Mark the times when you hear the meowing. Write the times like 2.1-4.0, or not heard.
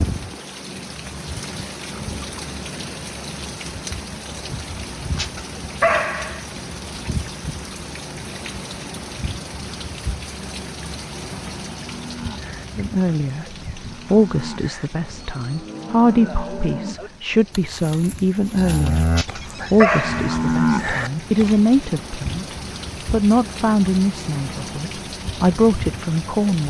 not heard.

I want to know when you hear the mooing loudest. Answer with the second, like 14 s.
21 s.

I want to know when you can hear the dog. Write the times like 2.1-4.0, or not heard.
5.2-6.4, 19.1-20.4.